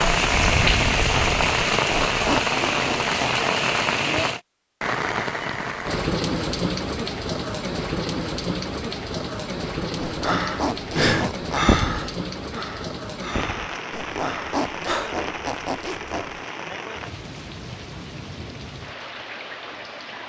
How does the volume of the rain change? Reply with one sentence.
The loudness of the rain goes down.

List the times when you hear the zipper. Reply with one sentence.
You can hear the zipper from 1.8 to 3.5 s, from 9.9 to 11.8 s and from 13.9 to 16.4 s.